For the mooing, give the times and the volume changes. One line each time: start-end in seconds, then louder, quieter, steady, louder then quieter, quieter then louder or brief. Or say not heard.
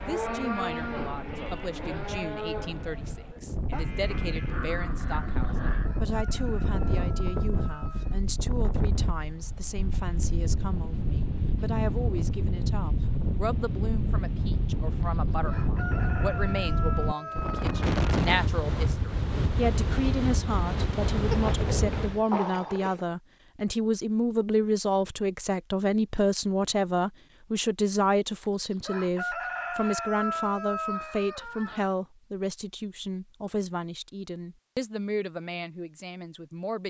0.0-5.5 quieter.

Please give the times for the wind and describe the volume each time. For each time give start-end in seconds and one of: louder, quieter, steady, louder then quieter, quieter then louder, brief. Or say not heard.
0.0-22.2 louder.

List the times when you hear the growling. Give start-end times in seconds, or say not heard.
4.1-6.0, 21.3-23.1.